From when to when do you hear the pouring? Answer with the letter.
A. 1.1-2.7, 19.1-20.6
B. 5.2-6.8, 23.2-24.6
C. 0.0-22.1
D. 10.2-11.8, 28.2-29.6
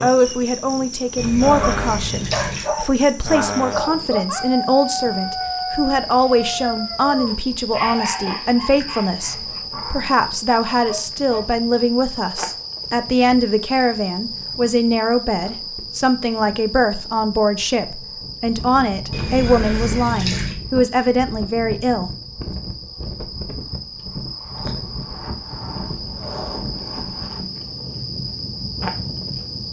A.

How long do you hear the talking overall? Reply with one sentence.
You can hear the talking for 22 seconds altogether.